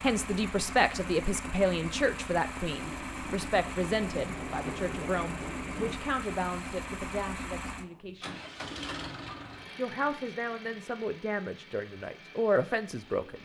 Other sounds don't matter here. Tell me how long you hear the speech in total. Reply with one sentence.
You can hear the speech for 12 seconds altogether.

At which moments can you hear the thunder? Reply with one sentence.
You can hear the thunder from 2.7 to 6.0 s.